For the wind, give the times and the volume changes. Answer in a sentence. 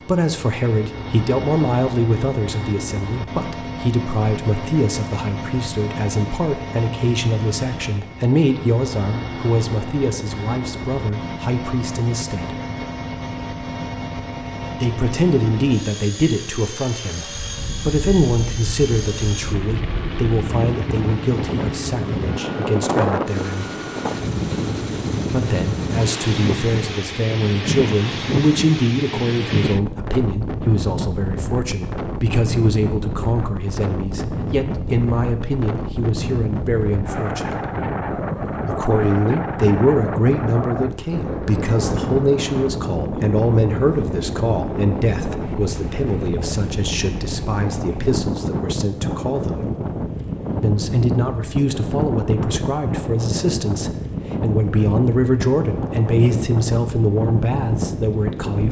You can hear the wind from 17.1 to 58.6 s, at a steady volume.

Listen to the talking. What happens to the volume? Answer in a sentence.
The volume of the talking stays about the same.